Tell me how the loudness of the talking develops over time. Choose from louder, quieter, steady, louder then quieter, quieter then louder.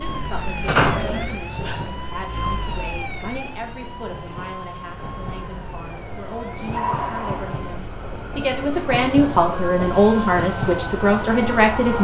louder.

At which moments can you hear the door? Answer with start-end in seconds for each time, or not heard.
0.7-1.9.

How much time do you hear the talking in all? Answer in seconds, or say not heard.
12 s.